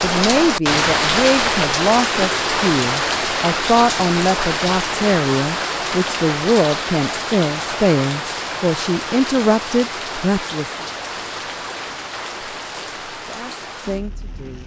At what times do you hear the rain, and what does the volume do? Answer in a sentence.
The rain can be heard from 0.0 to 14.6 s, getting quieter.